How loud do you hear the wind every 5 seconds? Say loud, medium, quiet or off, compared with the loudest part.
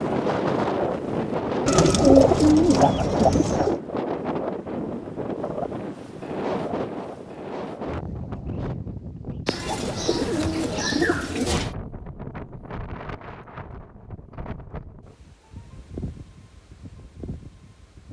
loud, medium, medium, quiet.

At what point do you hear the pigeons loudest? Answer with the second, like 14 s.
2 s.